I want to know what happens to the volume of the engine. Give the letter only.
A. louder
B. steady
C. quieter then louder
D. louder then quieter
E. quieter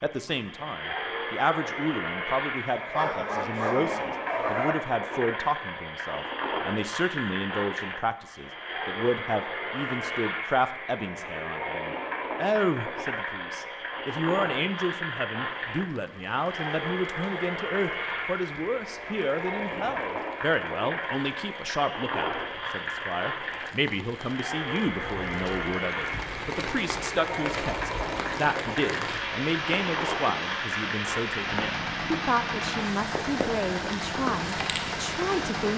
B.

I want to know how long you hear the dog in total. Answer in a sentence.
The dog can be heard for 2 seconds in total.